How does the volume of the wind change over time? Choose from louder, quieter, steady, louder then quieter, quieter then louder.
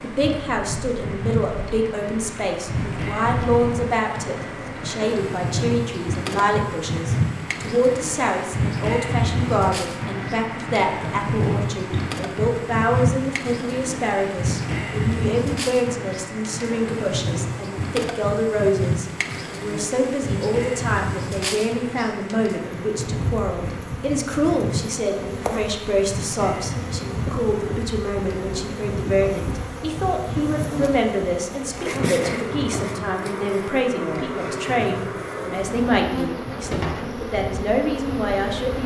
quieter.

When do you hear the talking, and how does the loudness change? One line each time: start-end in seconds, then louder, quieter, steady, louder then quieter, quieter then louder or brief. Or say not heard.
0.0-38.8 steady.